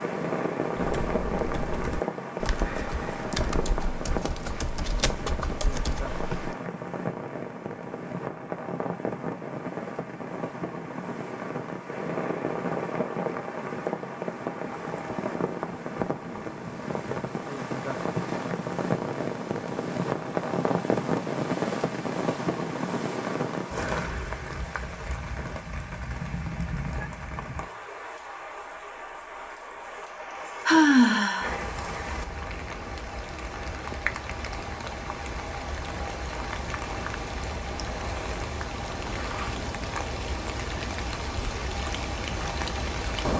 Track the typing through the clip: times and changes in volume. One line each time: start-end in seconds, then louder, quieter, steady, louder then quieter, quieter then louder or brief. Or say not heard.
0.8-6.5 steady.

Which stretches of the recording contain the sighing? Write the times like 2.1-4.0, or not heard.
30.6-31.6.